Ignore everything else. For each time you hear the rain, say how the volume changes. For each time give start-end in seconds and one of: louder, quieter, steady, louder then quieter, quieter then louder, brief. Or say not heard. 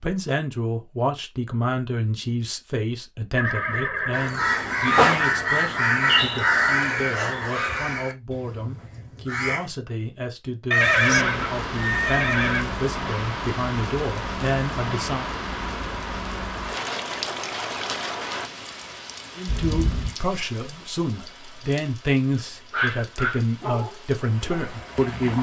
10.8-25.3 quieter.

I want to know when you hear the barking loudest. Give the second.
23 s.